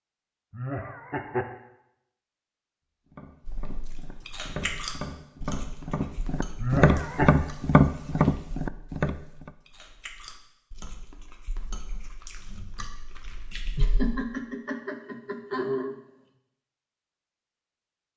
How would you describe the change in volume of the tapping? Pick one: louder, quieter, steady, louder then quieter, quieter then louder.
louder.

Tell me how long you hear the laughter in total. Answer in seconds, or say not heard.
4 s.